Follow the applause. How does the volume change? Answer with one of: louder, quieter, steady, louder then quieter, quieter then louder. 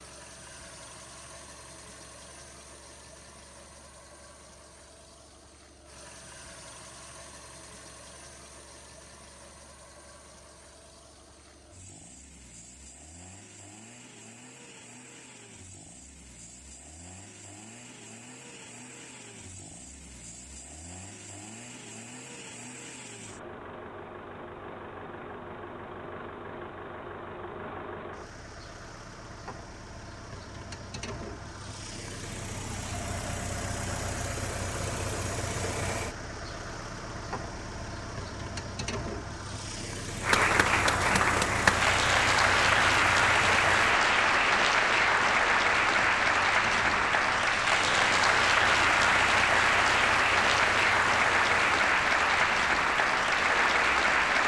steady.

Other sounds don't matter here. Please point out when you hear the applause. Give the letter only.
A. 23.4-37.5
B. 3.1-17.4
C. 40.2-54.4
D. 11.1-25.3
C.